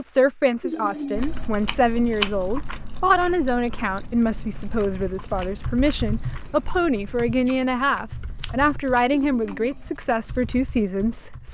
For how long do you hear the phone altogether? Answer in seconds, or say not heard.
2 s.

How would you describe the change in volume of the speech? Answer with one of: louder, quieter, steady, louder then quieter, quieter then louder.
steady.